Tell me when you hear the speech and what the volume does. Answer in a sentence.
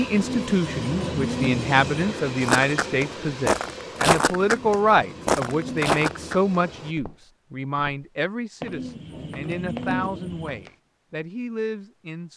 You can hear the speech from 0.0 to 12.3 s, getting quieter.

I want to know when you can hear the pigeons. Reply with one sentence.
The pigeons can be heard from 0.1 to 2.0 s, from 4.3 to 6.5 s and from 8.6 to 10.7 s.